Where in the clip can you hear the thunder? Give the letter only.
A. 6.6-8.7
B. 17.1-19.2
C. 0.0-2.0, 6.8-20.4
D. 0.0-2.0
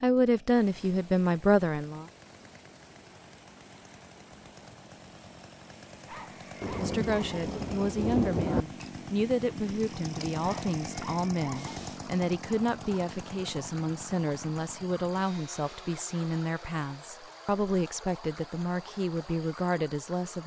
A.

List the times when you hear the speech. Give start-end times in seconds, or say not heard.
0.0-2.0, 6.8-20.4.